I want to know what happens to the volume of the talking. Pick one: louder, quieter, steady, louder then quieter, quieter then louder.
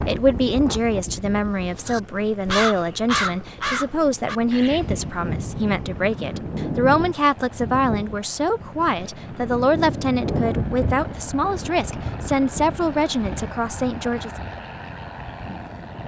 steady.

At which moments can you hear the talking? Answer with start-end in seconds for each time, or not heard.
0.1-14.3.